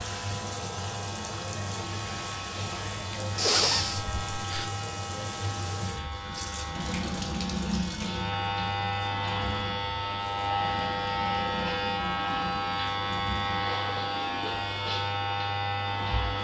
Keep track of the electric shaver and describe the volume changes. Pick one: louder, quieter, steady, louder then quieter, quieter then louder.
louder.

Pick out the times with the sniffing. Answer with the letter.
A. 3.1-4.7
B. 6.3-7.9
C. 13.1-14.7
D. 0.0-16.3
A.